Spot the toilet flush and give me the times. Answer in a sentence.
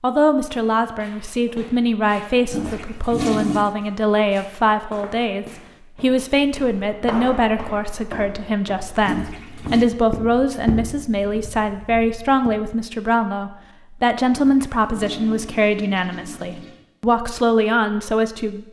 You can hear the toilet flush from 2.5 to 3.8 s, from 9.0 to 9.9 s and from 14.3 to 16.9 s.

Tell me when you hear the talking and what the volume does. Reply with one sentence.
You can hear the talking from 0.0 to 18.6 s, at a steady volume.